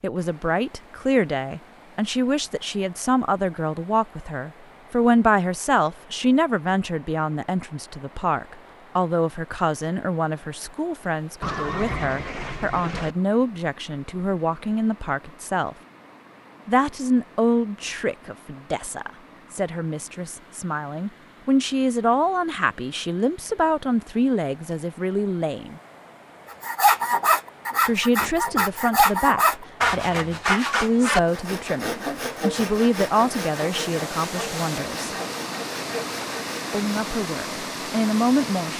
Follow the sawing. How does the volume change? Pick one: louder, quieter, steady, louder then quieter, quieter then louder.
quieter.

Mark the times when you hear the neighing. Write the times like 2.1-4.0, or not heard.
11.4-13.2.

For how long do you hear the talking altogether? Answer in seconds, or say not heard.
34 s.